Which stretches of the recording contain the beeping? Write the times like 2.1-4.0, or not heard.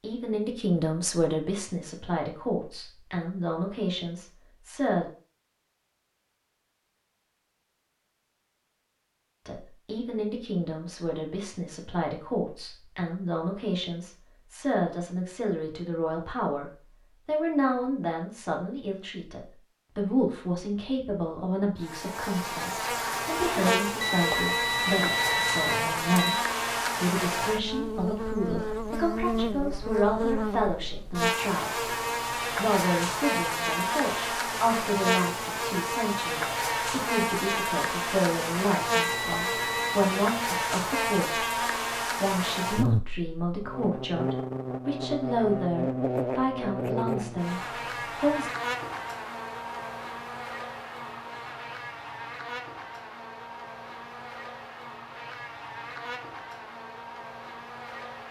24.0-26.4, 39.0-40.0.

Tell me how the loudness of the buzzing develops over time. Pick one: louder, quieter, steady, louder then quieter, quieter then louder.
quieter.